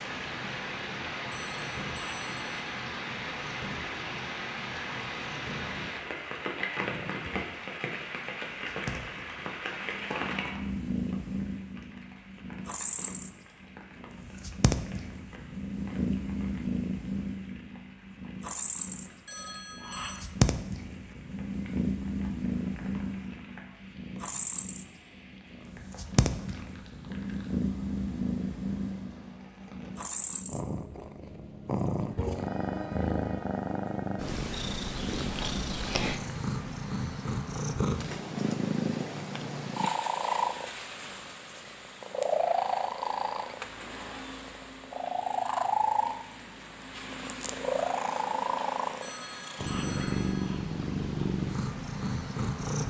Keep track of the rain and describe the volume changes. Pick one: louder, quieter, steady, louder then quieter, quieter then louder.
quieter.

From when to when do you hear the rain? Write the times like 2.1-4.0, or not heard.
0.0-30.4.